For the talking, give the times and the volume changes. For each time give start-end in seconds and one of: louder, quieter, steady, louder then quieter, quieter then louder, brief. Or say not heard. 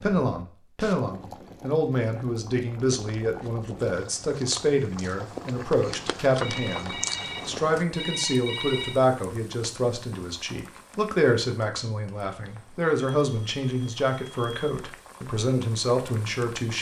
0.0-16.7 steady.